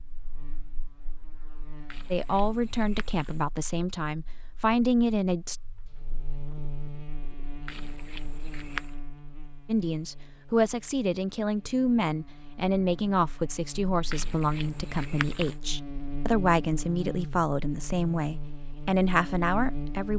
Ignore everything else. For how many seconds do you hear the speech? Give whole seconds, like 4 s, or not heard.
14 s.